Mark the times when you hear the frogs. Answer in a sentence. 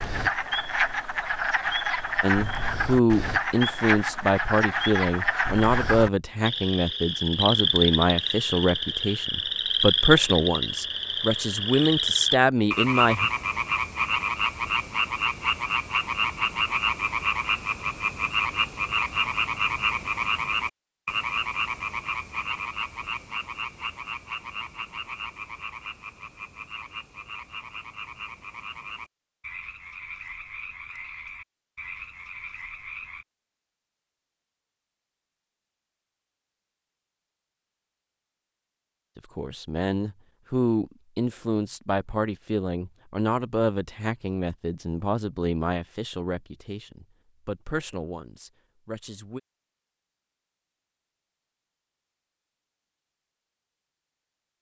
You can hear the frogs from 0.0 to 33.2 s.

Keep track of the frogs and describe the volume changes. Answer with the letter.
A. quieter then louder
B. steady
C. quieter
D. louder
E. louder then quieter
C.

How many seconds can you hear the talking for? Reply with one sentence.
The talking can be heard for 21 seconds in total.